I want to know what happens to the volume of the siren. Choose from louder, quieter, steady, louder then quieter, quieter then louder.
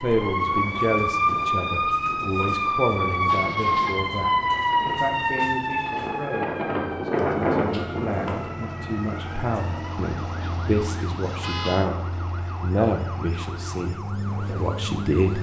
quieter.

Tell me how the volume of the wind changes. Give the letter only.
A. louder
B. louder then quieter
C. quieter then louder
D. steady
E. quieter
A.